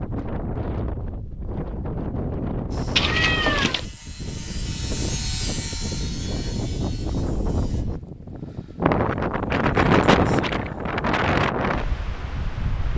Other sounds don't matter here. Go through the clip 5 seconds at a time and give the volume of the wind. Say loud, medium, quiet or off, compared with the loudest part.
medium, loud, loud.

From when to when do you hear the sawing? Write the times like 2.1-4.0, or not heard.
2.7-8.0.